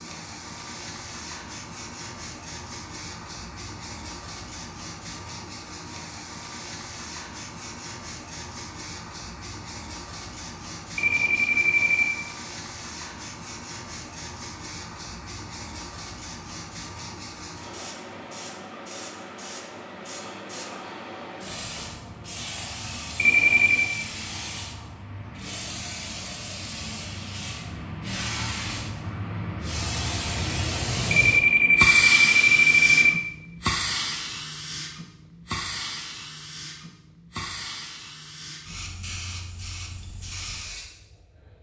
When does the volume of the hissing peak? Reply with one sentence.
The volume of the hissing peaks at 32 seconds.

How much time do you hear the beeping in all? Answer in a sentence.
You can hear the beeping for 4 seconds altogether.